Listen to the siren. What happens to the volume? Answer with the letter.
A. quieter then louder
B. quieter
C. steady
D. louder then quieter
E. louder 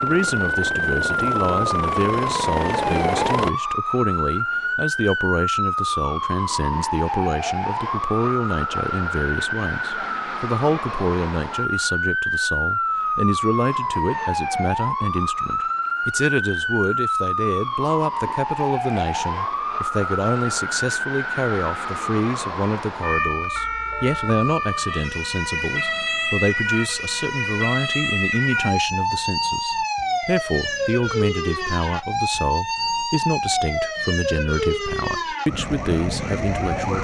C.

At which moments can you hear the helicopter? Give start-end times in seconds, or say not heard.
0.0-3.5.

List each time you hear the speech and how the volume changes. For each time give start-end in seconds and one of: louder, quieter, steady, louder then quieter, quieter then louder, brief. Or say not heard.
0.0-36.9 steady.